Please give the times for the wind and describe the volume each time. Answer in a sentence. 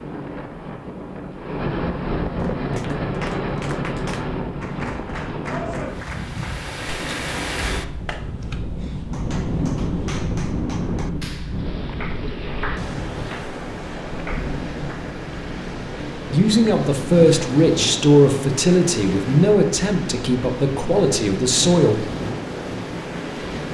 The wind can be heard from 0.0 to 23.6 s, at a steady volume.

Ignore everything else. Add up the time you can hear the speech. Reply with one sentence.
You can hear the speech for 6 seconds altogether.